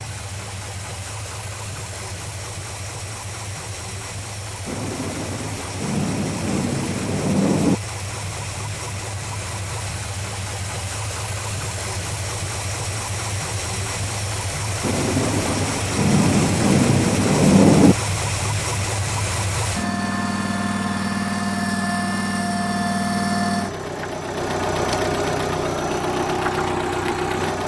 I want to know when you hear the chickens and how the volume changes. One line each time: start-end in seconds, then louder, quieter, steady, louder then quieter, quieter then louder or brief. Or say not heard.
not heard.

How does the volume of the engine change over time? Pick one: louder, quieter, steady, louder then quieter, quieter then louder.
louder.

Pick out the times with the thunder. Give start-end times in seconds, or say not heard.
4.7-7.8, 14.8-17.9.